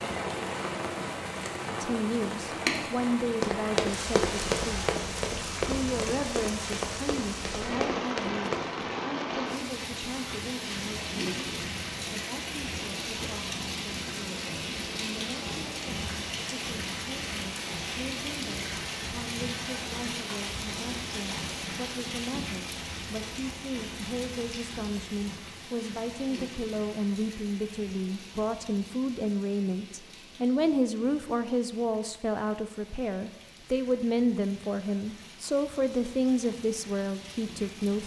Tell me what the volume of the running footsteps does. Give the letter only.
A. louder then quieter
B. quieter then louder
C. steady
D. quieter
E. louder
D.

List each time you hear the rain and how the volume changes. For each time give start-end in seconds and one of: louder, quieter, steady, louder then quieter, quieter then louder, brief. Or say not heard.
0.0-38.0 quieter.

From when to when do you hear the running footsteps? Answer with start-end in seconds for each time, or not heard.
3.4-8.7.